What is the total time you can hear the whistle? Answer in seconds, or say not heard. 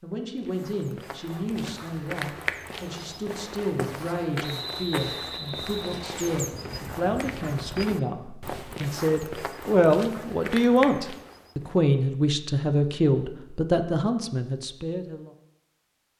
2 s.